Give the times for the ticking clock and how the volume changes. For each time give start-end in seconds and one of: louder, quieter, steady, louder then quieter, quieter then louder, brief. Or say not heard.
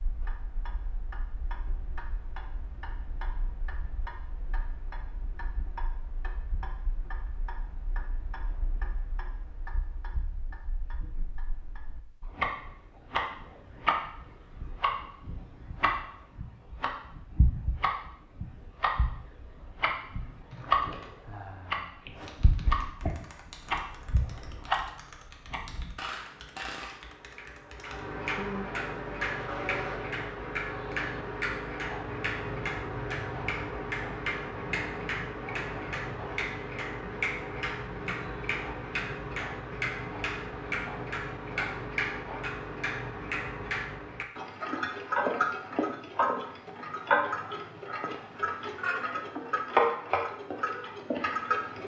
0.0-51.8 louder.